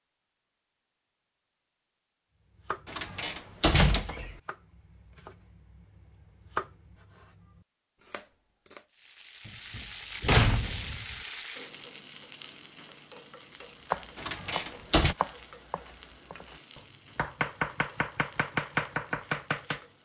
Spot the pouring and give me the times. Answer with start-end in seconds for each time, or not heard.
not heard.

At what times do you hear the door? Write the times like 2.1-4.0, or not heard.
2.9-4.3, 9.4-11.2, 14.2-15.2.